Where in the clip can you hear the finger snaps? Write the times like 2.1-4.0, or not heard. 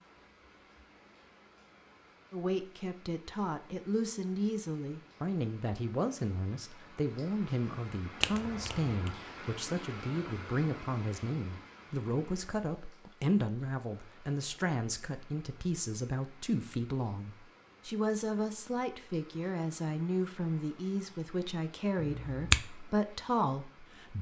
8.2-9.1, 21.9-22.6.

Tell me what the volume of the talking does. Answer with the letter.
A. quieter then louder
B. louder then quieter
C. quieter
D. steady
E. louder
D.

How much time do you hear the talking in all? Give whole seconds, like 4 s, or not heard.
22 s.